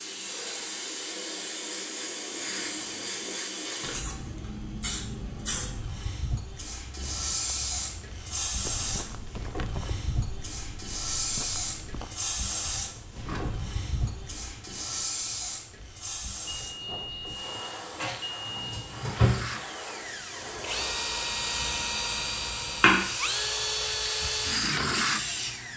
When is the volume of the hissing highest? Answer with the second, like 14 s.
23 s.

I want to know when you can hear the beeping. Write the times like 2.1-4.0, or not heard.
16.4-18.9.